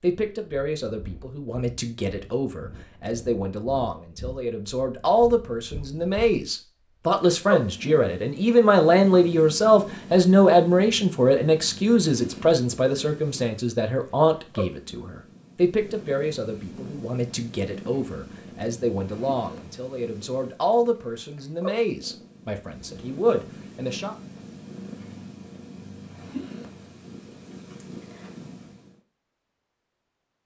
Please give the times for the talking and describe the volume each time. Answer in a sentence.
You can hear the talking from 0.0 to 24.1 s, getting louder then quieter.